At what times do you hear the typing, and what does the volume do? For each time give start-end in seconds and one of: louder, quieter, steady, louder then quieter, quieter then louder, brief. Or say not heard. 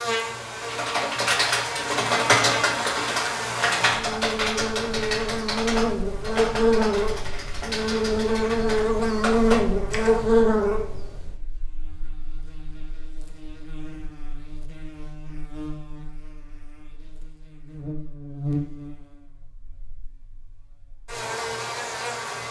0.6-10.3 quieter.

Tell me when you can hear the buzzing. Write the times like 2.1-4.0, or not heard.
0.0-22.4.